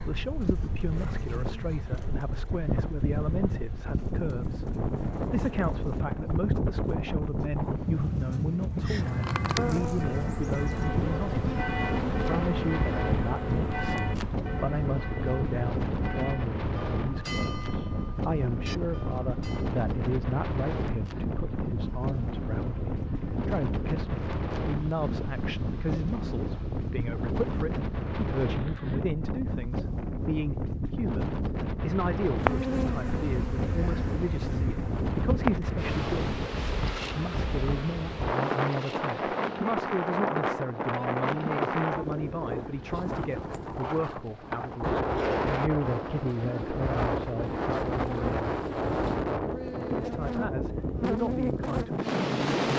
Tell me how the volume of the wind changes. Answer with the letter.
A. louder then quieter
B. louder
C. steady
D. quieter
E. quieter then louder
C.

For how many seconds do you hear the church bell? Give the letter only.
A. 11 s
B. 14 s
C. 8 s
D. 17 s
A.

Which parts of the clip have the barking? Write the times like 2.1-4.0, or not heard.
not heard.